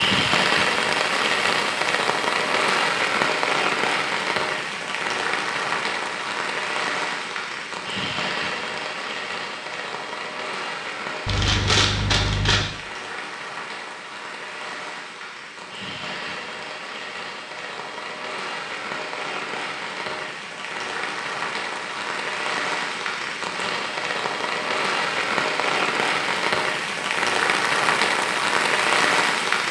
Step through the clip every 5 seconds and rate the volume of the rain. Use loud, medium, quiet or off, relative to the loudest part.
loud, medium, medium, medium, medium, loud.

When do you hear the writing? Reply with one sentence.
The writing can't be heard in this clip.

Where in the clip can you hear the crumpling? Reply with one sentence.
You can hear the crumpling from 11.2 to 12.7 s.